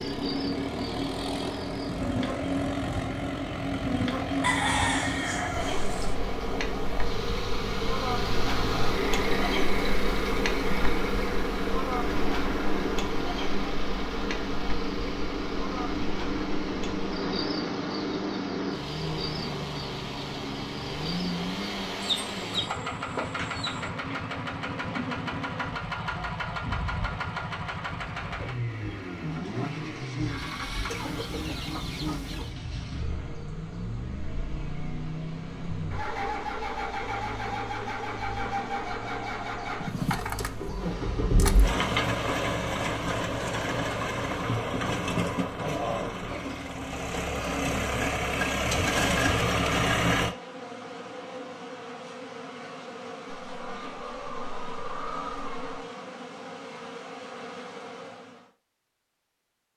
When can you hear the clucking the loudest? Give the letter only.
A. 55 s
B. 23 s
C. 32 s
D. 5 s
D.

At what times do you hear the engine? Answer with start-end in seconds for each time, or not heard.
0.0-50.4.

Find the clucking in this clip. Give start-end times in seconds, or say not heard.
4.4-6.2, 22.0-23.9, 30.9-32.5, 53.3-55.9.